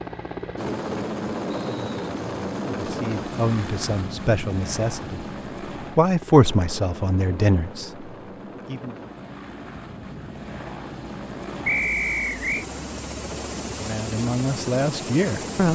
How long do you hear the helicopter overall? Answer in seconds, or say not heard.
16 s.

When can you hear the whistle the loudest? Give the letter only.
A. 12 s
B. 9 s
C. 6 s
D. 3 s
A.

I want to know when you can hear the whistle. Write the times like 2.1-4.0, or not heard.
1.5-1.9, 11.7-12.7.